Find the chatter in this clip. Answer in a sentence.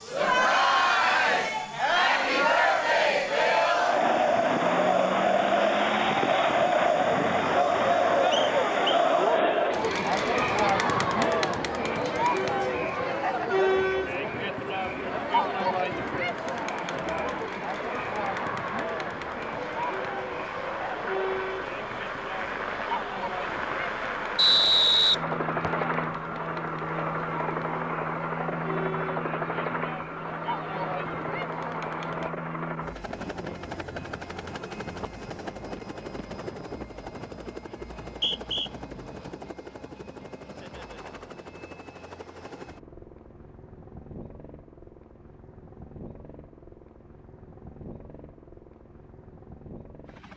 The chatter can be heard from 0.1 to 32.3 s.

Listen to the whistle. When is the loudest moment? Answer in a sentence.
The volume of the whistle peaks at 25 seconds.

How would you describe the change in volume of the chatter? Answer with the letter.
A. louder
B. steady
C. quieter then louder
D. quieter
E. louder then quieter
D.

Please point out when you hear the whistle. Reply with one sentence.
You can hear the whistle from 8.3 to 9.7 s, from 24.4 to 25.7 s and from 38.0 to 38.7 s.